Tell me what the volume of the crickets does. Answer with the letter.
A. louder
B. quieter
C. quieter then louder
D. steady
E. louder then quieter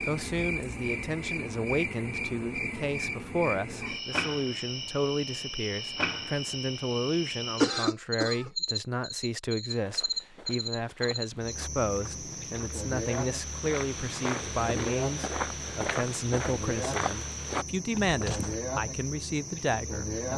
D.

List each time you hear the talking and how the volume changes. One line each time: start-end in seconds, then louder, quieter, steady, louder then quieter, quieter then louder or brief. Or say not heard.
0.0-20.3 steady.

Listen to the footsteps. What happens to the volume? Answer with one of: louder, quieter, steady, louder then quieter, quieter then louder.
louder.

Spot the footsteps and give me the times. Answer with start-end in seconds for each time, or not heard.
9.7-18.6.